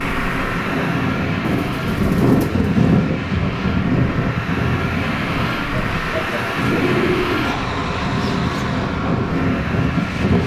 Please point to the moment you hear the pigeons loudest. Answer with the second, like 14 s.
7 s.